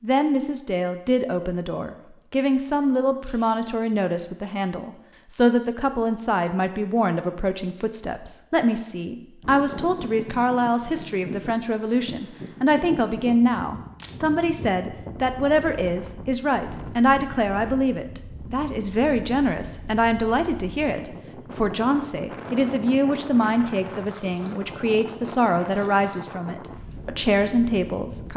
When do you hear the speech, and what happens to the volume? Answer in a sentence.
You can hear the speech from 0.0 to 28.3 s, at a steady volume.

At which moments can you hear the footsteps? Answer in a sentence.
The footsteps can't be heard in this clip.